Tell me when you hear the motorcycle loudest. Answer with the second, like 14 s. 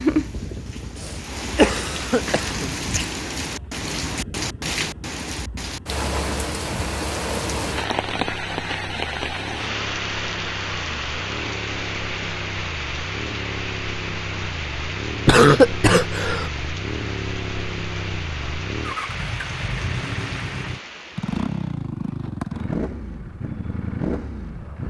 22 s.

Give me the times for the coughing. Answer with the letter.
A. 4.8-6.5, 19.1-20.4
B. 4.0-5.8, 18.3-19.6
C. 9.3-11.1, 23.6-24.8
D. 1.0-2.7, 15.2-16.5
D.